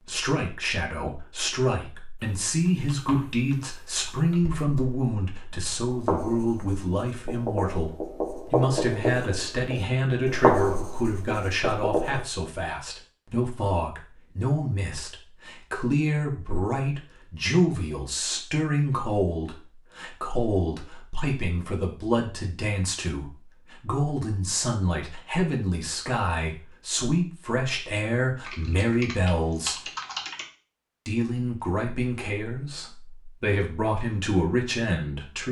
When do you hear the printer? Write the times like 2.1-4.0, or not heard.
not heard.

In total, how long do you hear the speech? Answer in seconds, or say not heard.
34 s.